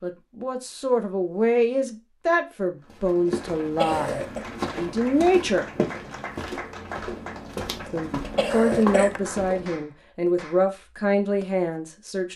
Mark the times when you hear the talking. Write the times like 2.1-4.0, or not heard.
0.0-5.7, 7.9-12.3.